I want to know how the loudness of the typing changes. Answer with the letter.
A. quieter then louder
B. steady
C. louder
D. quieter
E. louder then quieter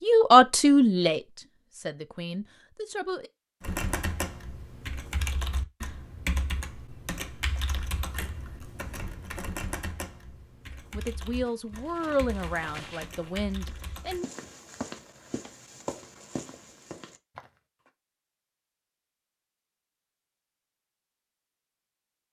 D.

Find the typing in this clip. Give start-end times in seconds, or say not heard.
3.6-14.2.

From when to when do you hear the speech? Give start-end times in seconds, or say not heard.
0.0-3.3, 10.9-14.2.